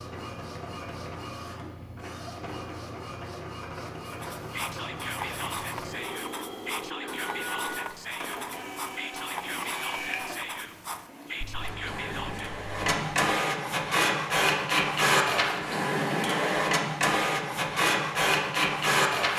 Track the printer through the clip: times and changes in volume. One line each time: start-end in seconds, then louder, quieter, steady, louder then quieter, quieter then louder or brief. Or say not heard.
0.0-19.3 louder.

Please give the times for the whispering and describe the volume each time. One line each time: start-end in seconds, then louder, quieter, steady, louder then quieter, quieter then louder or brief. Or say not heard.
4.5-12.7 steady.